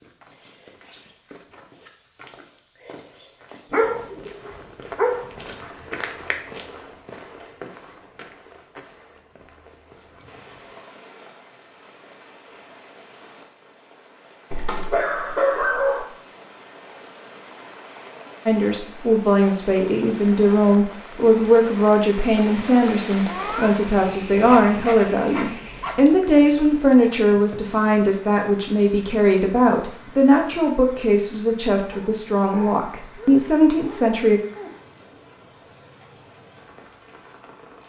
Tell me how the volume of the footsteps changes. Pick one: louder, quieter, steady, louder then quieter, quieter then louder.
louder then quieter.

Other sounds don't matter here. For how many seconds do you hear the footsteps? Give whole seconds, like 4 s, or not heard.
11 s.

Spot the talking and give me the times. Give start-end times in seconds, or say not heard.
18.4-34.4.